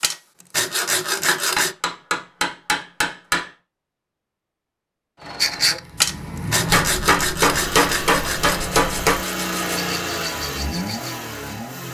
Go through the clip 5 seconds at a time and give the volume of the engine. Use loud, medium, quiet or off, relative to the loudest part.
off, loud, loud.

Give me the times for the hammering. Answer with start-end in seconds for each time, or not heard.
1.2-3.5, 6.7-9.2.